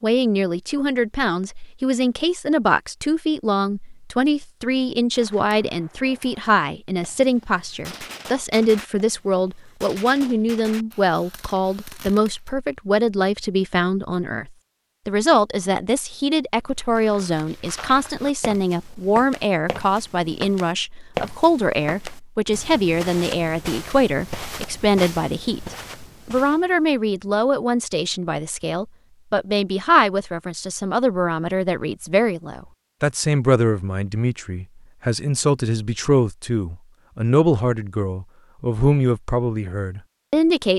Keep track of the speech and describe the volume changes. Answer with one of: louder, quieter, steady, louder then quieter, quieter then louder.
steady.